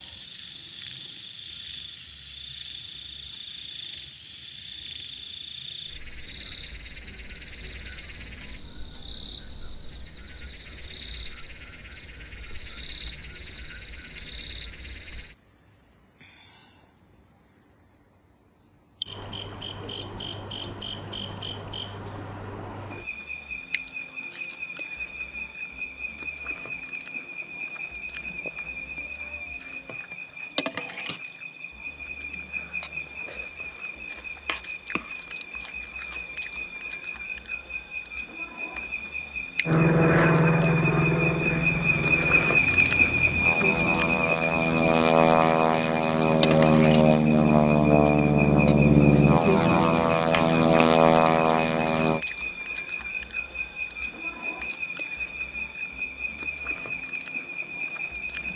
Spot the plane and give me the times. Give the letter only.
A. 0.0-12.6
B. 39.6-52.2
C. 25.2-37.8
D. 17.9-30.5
B.